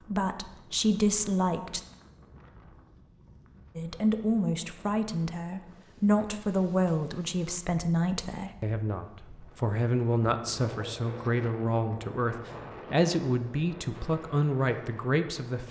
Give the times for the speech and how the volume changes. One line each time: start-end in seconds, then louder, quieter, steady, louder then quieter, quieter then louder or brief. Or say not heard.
0.1-1.8 brief
3.8-15.6 steady.